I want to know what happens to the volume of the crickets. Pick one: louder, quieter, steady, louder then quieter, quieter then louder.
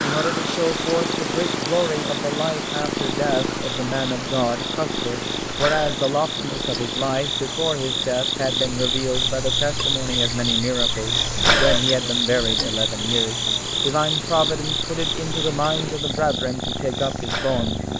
louder then quieter.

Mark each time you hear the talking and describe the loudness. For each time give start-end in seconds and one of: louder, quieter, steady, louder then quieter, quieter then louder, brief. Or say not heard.
0.0-17.8 steady.